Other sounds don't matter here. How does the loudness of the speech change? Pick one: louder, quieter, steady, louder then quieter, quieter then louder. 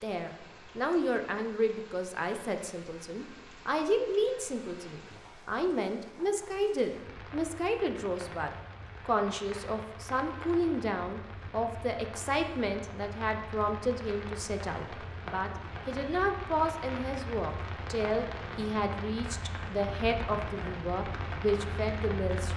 steady.